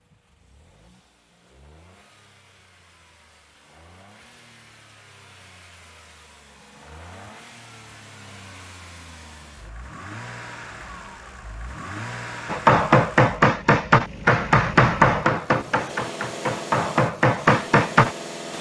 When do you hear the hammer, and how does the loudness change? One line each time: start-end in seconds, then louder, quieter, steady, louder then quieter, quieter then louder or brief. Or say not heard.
12.4-18.1 quieter then louder.